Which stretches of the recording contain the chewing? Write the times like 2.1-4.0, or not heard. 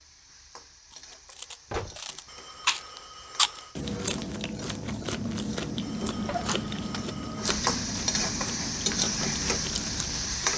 0.9-10.5.